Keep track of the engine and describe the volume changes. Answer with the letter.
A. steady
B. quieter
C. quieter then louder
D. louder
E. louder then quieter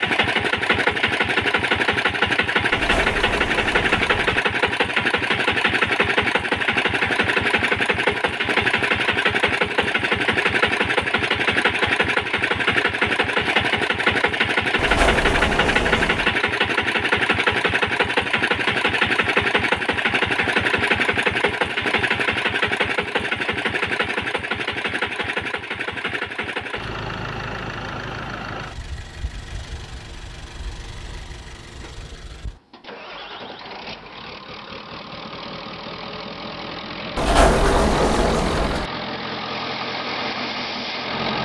B.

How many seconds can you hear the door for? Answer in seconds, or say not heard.
5 s.